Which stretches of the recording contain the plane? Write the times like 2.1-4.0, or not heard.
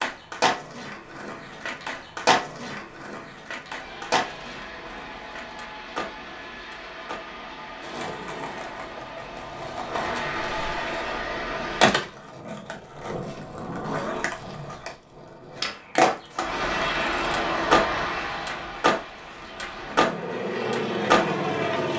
3.6-12.0, 16.3-21.9.